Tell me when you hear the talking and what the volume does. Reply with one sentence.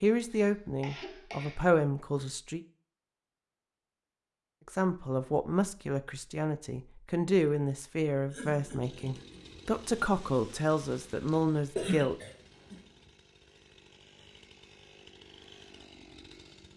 The talking can be heard briefly from 0.0 to 2.6 s; and from 4.7 to 12.2 s, at a steady volume.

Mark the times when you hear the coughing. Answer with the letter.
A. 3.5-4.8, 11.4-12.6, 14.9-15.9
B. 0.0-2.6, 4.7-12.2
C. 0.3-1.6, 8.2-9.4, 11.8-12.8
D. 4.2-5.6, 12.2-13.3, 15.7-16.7
C.